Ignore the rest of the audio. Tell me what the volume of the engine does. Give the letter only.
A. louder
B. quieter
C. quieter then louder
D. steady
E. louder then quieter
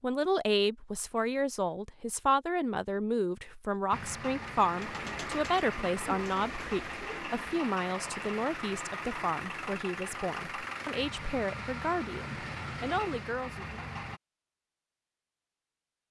D.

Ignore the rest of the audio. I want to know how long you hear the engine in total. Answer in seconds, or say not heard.
10 s.